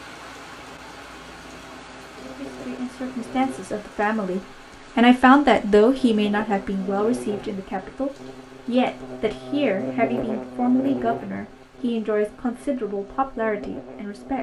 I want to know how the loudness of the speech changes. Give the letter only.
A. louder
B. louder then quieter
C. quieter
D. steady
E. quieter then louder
B.